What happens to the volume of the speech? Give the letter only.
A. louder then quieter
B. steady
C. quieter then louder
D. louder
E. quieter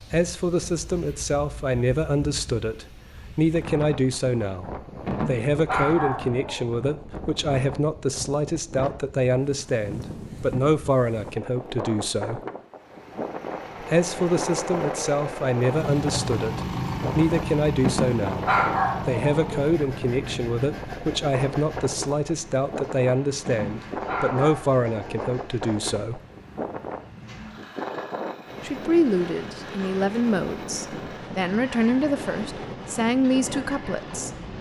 B.